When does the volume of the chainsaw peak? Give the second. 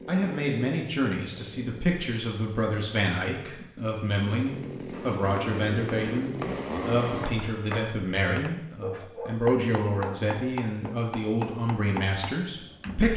7 s.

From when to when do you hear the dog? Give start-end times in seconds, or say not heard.
8.8-10.3.